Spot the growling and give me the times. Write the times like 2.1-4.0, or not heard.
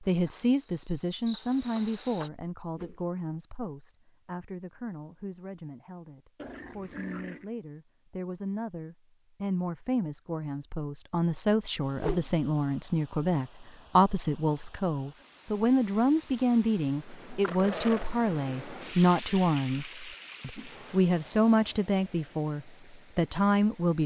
6.3-7.5, 17.4-18.1.